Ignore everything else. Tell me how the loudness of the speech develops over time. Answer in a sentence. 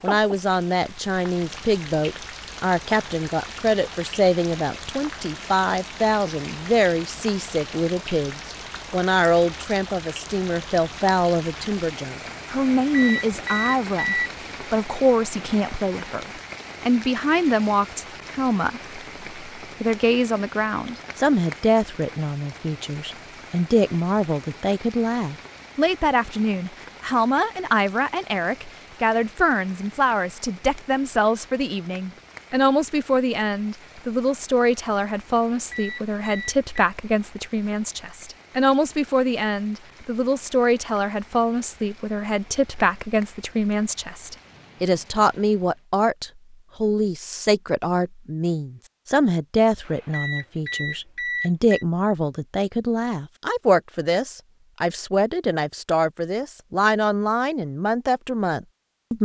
The volume of the speech stays about the same.